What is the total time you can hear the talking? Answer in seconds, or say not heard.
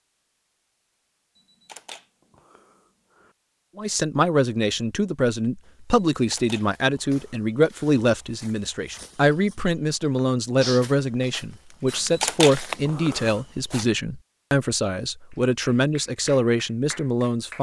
14 s.